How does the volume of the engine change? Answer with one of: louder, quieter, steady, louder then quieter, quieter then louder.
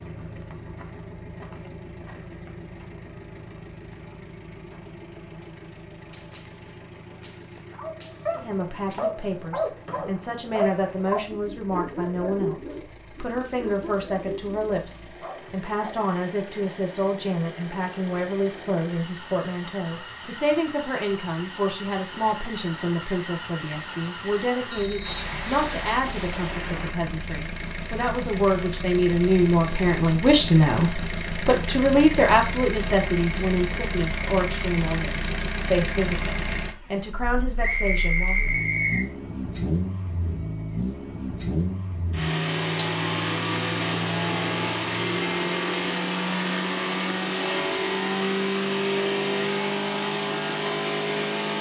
louder.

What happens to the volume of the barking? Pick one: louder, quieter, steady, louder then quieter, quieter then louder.
quieter.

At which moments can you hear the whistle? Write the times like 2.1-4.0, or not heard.
9.8-11.2, 24.7-25.6, 37.6-39.1.